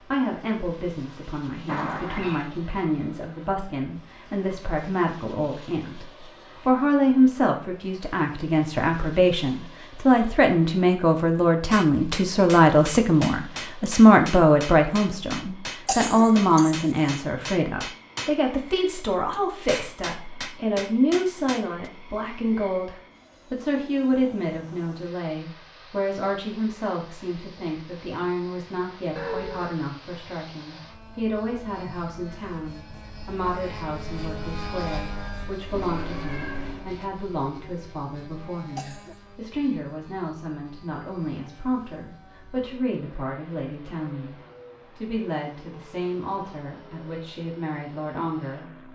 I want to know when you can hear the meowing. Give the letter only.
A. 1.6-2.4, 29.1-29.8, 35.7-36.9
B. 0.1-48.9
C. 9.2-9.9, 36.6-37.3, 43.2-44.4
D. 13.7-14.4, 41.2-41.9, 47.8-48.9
A.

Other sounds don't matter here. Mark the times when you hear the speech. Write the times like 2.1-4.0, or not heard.
0.1-48.9.